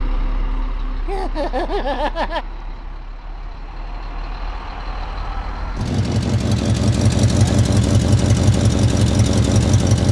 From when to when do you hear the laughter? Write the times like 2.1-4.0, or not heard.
1.1-2.5.